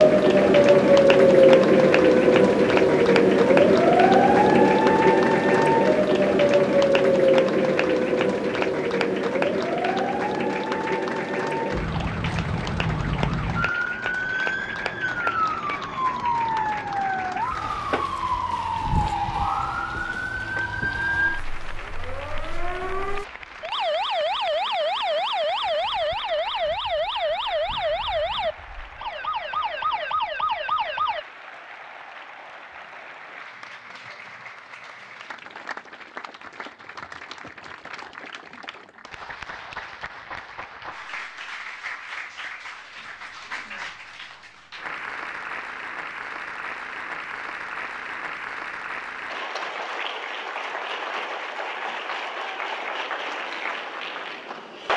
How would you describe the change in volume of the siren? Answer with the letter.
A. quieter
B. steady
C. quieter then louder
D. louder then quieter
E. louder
A.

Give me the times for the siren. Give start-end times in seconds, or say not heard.
0.0-31.2.